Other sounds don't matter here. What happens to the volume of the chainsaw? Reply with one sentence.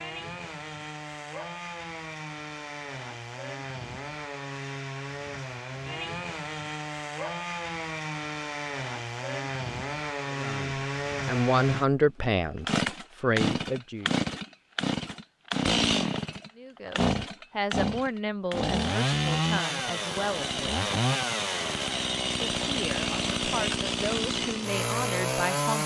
The volume of the chainsaw goes up.